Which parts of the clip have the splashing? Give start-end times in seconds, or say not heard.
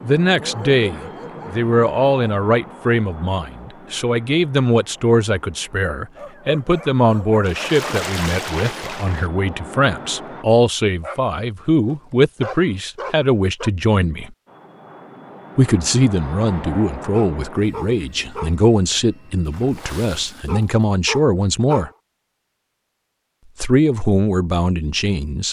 7.4-9.3, 19.4-20.9.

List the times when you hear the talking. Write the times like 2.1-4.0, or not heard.
0.0-14.3, 15.6-21.9, 23.6-25.4.